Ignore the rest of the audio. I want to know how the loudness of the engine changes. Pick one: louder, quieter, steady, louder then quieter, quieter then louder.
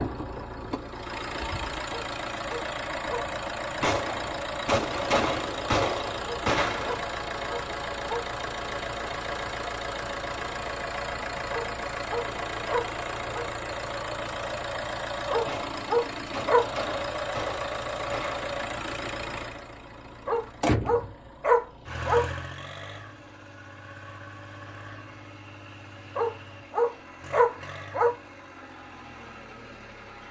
quieter.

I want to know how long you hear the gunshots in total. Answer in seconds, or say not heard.
6 s.